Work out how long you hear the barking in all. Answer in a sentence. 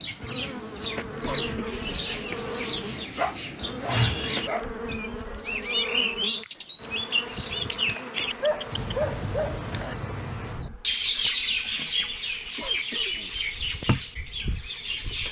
The barking can be heard for 3 seconds in total.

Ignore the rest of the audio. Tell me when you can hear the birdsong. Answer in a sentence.
The birdsong can be heard from 0.0 to 15.2 s.